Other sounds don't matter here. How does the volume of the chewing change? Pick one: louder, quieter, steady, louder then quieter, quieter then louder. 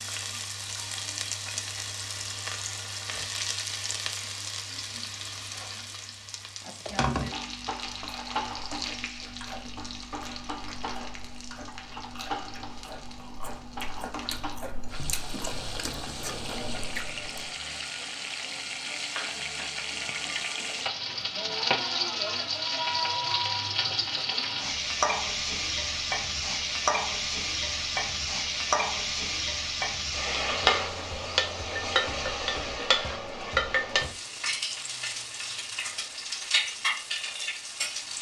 louder.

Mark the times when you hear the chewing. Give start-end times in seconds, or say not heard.
8.0-17.5.